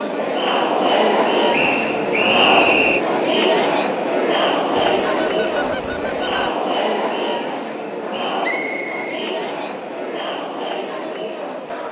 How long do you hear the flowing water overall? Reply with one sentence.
The flowing water can't be heard in this clip.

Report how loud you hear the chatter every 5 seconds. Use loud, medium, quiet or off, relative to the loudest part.
loud, medium, medium.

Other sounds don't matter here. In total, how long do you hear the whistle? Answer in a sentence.
The whistle can be heard for 3 seconds in total.